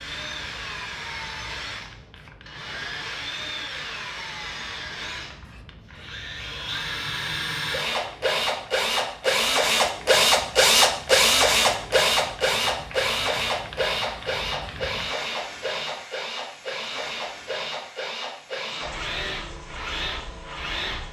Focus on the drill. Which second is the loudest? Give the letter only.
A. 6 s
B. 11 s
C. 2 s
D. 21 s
B.